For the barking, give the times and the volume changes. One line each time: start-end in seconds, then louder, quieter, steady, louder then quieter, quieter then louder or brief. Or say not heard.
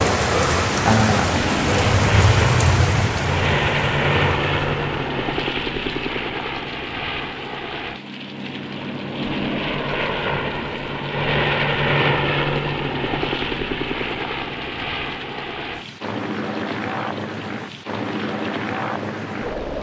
not heard.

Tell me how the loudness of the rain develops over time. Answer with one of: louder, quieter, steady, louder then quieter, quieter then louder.
quieter.